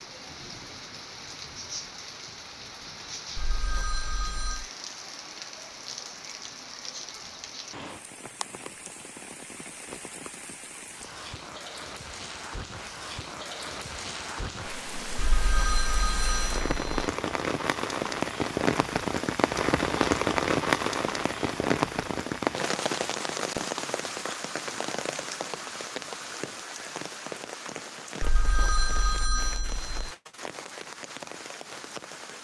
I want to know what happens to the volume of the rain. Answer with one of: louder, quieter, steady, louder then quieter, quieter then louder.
louder then quieter.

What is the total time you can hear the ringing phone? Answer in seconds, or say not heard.
5 s.